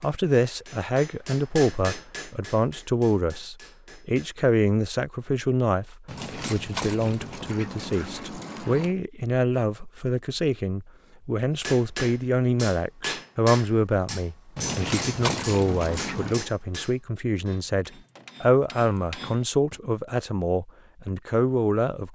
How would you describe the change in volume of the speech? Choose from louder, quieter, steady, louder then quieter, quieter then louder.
steady.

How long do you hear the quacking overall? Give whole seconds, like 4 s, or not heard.
5 s.